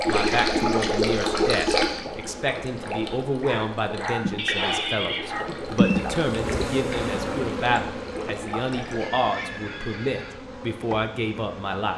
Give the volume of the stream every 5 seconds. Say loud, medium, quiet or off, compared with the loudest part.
loud, medium, off.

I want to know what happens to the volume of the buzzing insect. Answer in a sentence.
The volume of the buzzing insect goes up, then down.